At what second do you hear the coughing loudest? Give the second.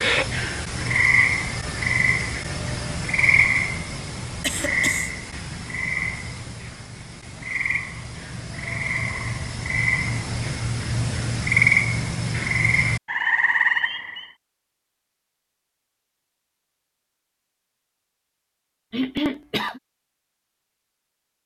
19 s.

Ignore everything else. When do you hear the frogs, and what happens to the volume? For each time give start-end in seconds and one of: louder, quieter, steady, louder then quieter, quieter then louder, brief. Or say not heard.
0.0-14.2 quieter then louder.